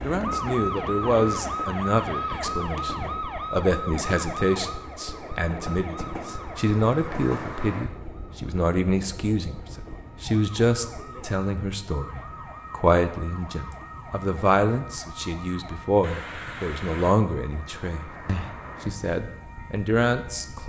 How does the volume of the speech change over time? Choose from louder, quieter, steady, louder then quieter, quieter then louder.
steady.